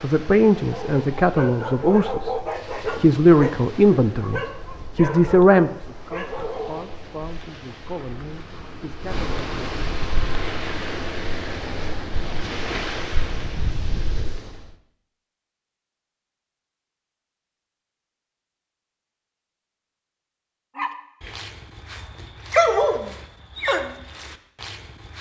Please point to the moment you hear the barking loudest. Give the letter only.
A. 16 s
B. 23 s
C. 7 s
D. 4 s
B.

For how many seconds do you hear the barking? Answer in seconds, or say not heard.
11 s.